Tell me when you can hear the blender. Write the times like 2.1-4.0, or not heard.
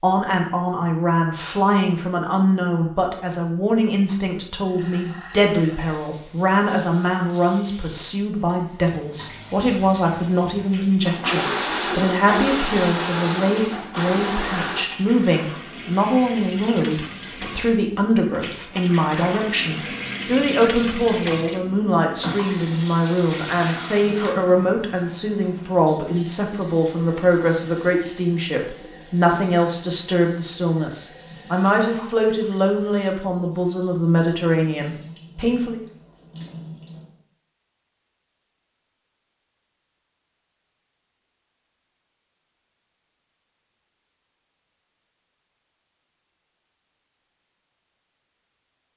11.0-14.8.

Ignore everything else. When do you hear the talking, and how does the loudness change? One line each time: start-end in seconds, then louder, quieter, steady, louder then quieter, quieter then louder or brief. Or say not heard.
0.0-35.8 steady.